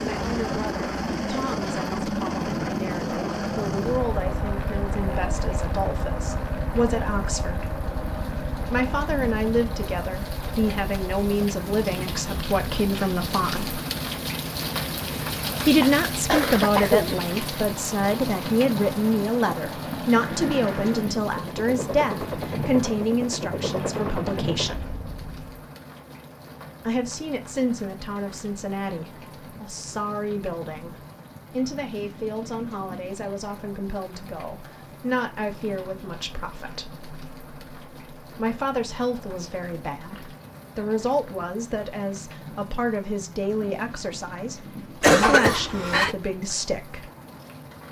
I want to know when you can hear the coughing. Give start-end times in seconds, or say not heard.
15.8-17.1, 45.0-46.1.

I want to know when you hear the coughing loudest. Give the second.
45 s.